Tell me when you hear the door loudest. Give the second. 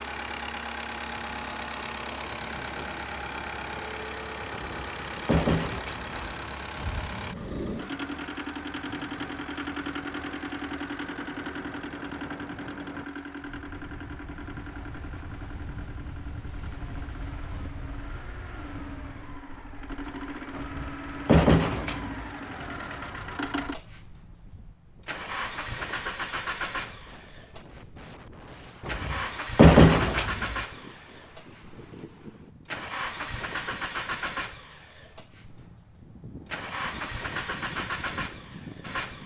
30 s.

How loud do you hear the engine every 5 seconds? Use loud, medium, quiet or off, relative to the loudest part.
loud, loud, loud, medium, loud, loud, loud, loud.